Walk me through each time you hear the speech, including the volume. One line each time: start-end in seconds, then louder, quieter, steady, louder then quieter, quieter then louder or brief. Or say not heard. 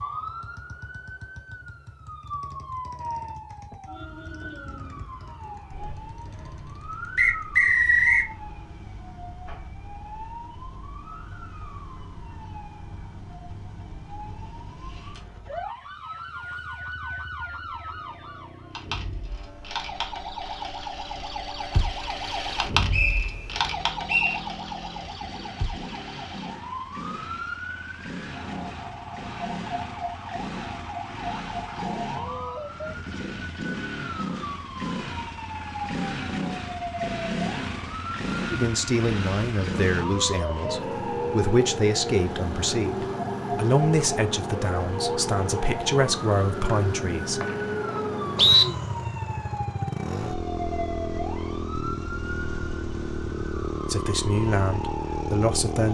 38.5-47.4 steady
53.9-55.9 brief.